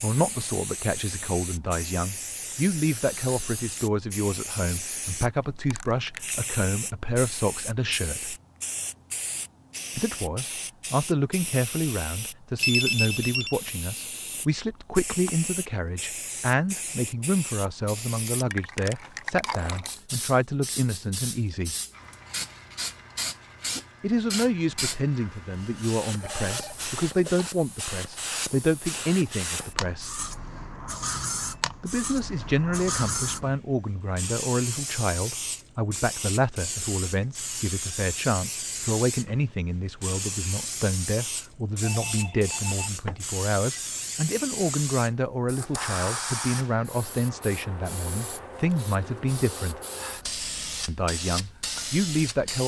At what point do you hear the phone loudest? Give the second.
13 s.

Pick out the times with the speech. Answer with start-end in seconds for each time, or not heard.
0.0-8.4, 9.9-21.8, 24.0-30.2, 31.8-49.8, 50.9-52.6.